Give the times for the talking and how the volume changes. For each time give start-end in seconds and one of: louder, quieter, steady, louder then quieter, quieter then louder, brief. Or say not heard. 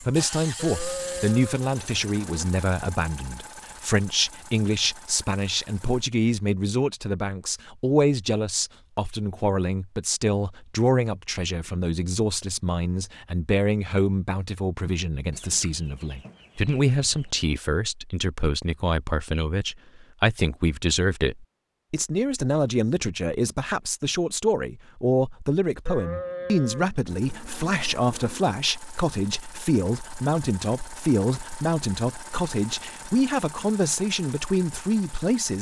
0.0-35.5 steady.